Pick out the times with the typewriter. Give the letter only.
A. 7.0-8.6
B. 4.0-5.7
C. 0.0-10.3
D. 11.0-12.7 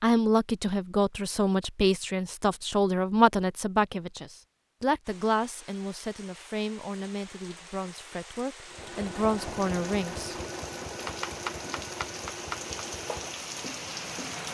D.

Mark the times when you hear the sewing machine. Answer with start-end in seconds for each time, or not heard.
8.7-14.5.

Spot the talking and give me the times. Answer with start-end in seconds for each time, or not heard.
0.0-10.3.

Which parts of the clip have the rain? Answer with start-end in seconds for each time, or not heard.
5.0-14.5.